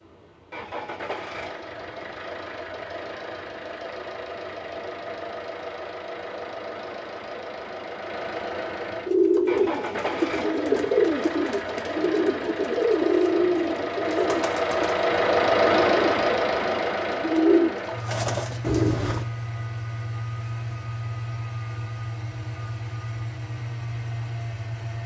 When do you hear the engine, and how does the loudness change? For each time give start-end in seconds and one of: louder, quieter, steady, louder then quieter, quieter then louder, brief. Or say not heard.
0.0-25.0 louder then quieter.